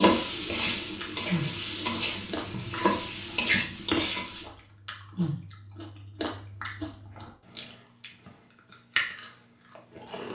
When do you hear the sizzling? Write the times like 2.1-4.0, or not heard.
0.0-4.5.